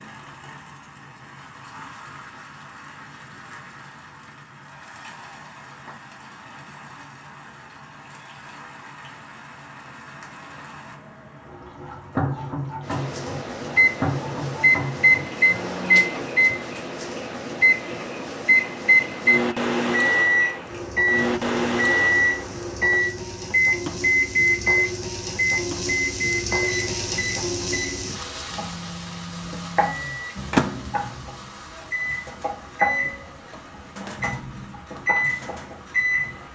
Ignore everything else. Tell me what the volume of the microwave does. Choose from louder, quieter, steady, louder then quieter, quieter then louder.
quieter.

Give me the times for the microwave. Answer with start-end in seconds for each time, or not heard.
12.8-36.4.